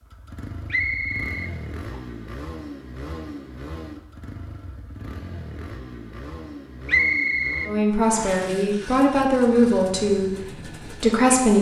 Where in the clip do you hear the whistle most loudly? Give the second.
7 s.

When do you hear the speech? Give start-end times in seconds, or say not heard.
7.7-11.5.